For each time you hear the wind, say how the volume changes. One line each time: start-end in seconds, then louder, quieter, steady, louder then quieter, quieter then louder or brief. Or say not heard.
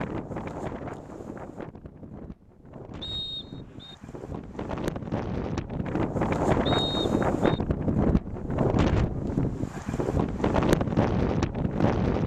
0.0-12.2 louder.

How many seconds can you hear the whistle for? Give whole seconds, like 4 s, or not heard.
2 s.